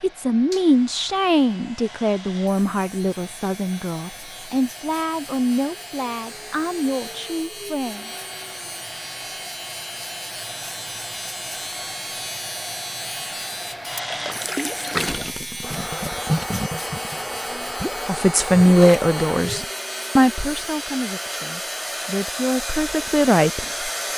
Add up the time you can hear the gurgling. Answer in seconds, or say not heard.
6 s.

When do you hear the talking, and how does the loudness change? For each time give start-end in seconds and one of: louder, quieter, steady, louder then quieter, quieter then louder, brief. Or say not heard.
0.0-8.1 quieter
18.1-23.6 quieter then louder.